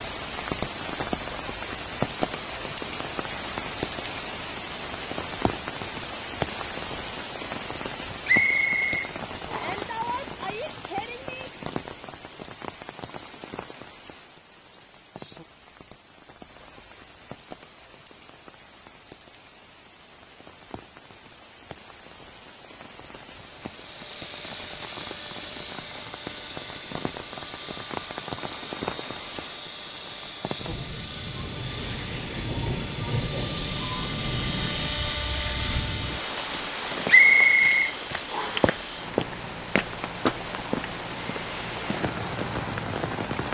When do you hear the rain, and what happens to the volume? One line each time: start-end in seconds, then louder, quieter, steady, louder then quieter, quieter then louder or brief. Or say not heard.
0.0-43.4 quieter then louder.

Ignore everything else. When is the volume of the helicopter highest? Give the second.
35 s.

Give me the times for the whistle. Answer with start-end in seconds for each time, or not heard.
8.2-9.8, 37.0-38.7.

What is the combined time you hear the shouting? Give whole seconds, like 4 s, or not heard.
2 s.